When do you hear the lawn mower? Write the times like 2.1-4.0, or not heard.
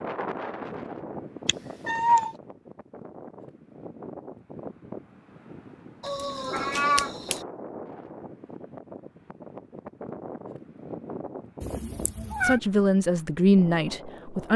not heard.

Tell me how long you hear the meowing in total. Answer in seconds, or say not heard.
3 s.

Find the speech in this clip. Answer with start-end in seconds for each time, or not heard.
12.4-14.5.